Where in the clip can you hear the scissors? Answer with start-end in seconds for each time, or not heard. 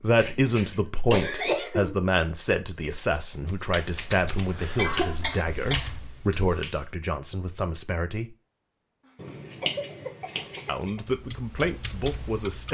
0.1-0.8, 4.8-6.8, 9.2-10.7.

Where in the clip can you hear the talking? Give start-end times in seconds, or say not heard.
0.0-8.3, 10.7-12.7.